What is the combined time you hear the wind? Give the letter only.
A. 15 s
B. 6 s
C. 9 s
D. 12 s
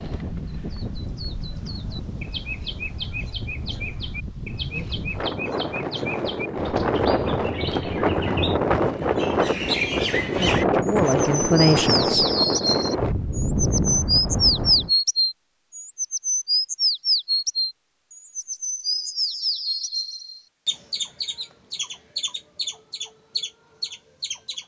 A.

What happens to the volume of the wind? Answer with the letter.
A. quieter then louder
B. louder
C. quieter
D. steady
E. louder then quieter
B.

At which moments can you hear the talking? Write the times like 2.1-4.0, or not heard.
10.5-12.2.